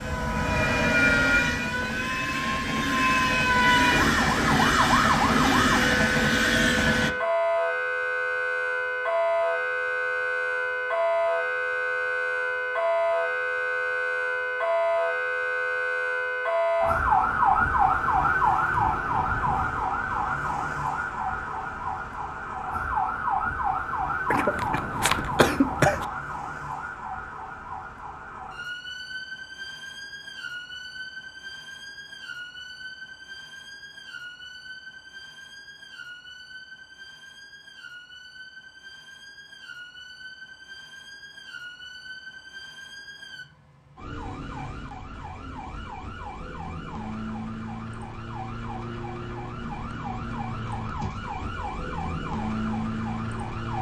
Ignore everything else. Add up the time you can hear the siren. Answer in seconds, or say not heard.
54 s.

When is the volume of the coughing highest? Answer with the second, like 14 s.
26 s.